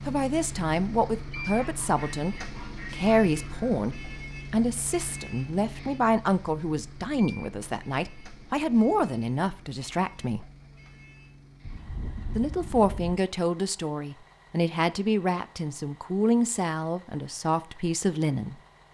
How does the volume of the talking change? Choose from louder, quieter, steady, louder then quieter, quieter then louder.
steady.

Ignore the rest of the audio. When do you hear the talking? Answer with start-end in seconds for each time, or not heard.
0.1-10.4, 12.3-18.6.